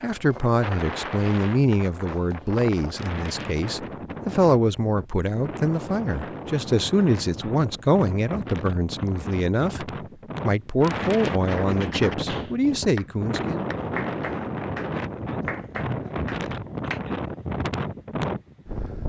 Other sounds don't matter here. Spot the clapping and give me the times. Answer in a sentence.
You can hear the clapping from 11.4 to 17.0 s.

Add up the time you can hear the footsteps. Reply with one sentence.
The footsteps can't be heard in this clip.